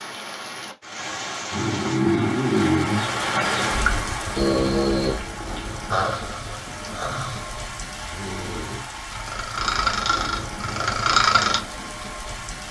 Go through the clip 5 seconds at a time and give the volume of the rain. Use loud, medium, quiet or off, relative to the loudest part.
loud, medium, medium.